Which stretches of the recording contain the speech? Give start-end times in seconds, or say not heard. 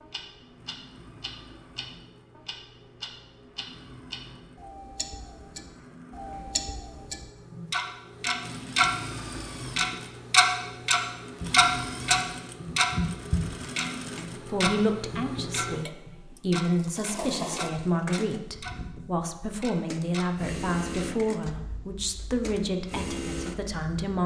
14.4-24.2.